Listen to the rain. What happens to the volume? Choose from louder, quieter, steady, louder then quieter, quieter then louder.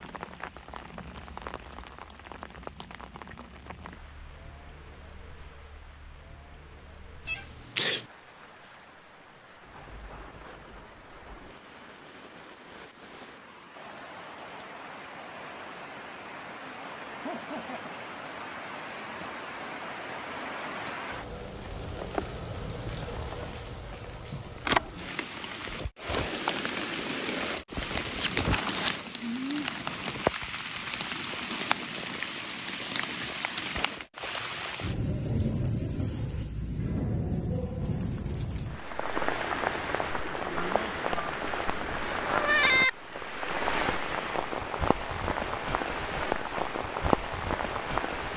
louder.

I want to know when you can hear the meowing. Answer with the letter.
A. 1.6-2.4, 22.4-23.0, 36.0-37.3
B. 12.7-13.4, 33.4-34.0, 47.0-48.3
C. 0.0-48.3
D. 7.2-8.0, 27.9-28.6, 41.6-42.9
D.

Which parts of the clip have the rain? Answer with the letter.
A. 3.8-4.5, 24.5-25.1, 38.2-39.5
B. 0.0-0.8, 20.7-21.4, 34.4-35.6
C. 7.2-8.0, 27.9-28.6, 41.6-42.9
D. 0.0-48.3
D.